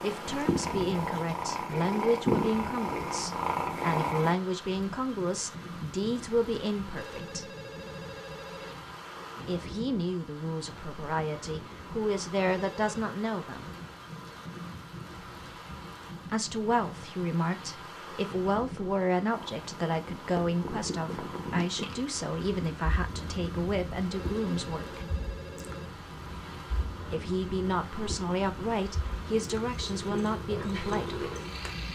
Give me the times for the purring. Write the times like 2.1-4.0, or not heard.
0.0-4.3, 19.3-31.9.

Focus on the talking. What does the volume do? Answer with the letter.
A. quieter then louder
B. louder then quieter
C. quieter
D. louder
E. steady
E.